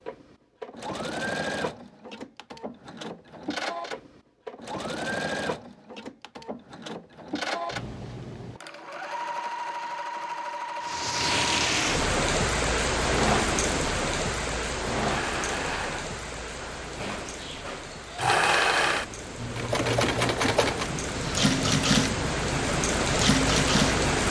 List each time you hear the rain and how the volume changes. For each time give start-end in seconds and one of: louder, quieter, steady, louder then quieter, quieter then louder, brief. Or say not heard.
10.8-24.2 quieter then louder.